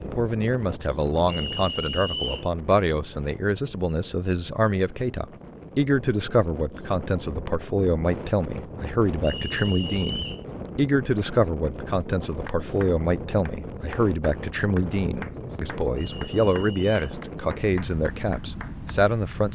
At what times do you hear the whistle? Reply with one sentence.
You can hear the whistle from 1.2 to 2.5 s, from 9.2 to 10.4 s and from 15.9 to 17.0 s.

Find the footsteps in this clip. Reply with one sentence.
You can't hear the footsteps here.